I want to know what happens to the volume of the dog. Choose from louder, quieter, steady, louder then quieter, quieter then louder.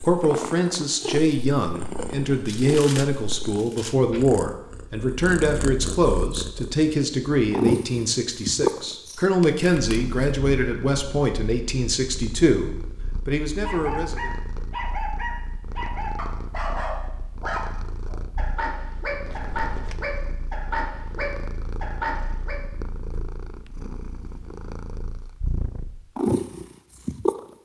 steady.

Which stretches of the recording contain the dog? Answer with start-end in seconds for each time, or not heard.
13.6-22.6.